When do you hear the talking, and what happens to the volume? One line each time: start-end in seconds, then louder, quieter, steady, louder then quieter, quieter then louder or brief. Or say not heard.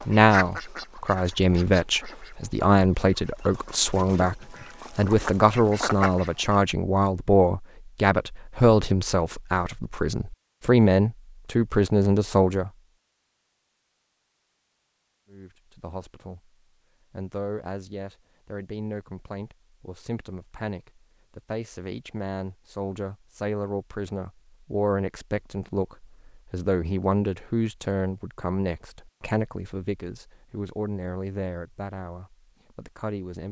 0.0-12.7 steady
15.3-16.5 brief
17.1-33.4 louder then quieter.